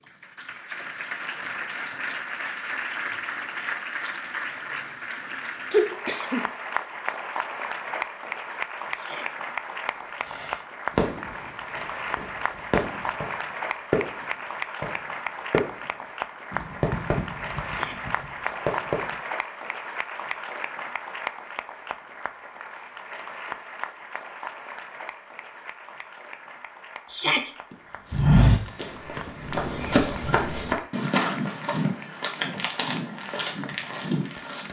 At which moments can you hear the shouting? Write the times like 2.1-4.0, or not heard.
8.9-9.4, 17.6-18.1, 27.1-27.6.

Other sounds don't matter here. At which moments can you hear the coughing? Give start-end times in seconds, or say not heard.
5.7-6.5.